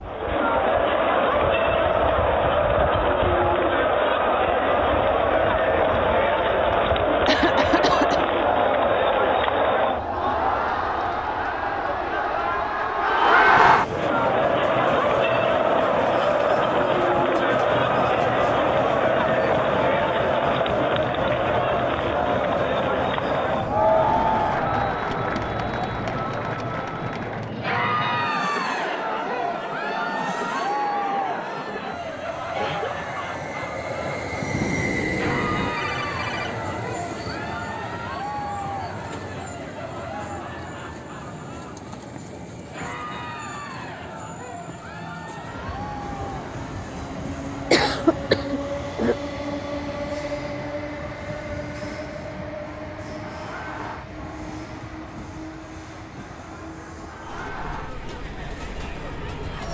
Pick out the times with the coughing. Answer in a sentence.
The coughing can be heard from 7.2 to 8.2 s, from 32.5 to 33.0 s and from 47.7 to 49.1 s.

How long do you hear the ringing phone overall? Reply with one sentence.
You can hear the ringing phone for 5 seconds altogether.